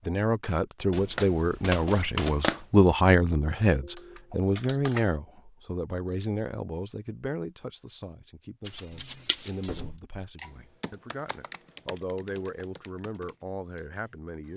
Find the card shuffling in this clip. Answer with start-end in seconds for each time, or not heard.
0.9-2.6, 8.7-9.8.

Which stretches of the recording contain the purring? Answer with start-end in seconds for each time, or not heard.
not heard.